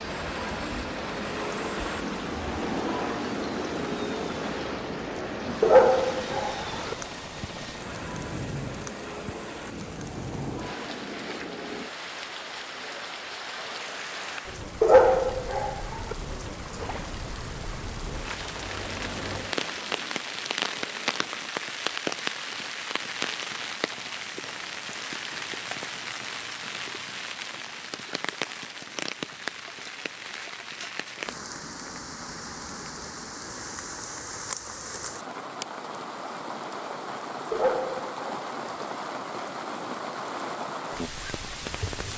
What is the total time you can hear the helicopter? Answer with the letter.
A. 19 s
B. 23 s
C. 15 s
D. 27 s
C.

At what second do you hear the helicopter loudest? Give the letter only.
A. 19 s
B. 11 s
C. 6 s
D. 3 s
D.